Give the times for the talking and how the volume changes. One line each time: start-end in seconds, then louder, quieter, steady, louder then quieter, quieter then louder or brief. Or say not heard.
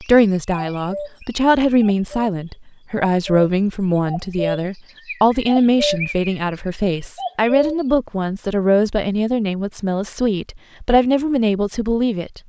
0.0-12.4 steady.